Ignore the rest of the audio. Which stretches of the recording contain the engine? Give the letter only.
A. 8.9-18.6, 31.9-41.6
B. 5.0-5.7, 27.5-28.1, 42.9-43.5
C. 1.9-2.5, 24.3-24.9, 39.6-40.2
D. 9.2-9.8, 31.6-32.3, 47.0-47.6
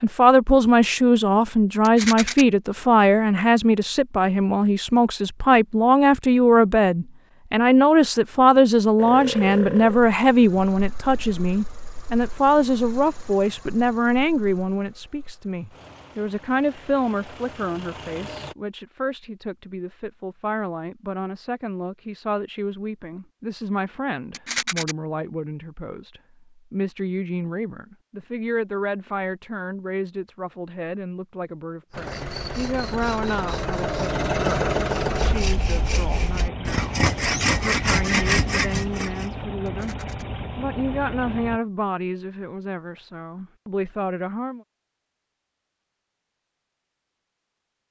A.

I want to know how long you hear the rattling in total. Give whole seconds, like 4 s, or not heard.
2 s.